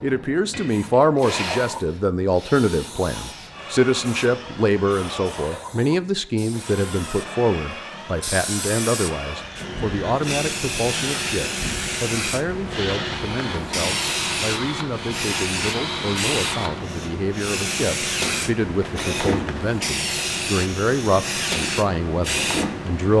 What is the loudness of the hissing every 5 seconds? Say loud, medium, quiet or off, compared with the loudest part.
medium, medium, loud, loud, loud.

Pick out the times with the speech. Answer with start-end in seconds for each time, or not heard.
0.0-23.1.